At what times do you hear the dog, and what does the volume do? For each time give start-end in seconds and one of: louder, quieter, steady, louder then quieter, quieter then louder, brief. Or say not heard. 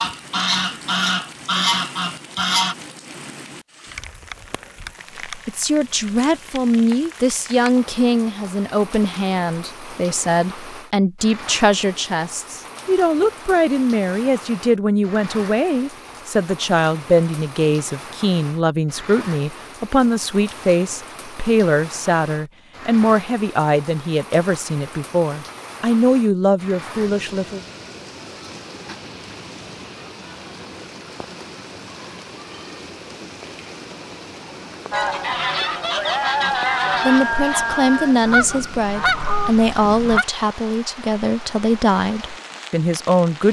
not heard.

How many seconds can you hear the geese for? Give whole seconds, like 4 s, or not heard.
8 s.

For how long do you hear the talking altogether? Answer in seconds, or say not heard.
29 s.